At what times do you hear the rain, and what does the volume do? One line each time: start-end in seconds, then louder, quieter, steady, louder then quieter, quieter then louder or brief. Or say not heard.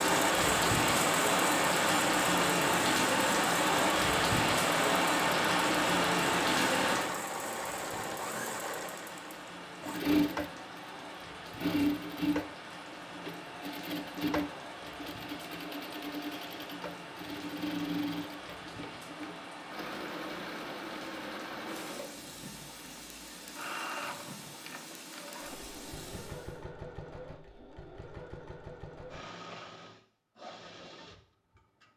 0.0-26.6 quieter.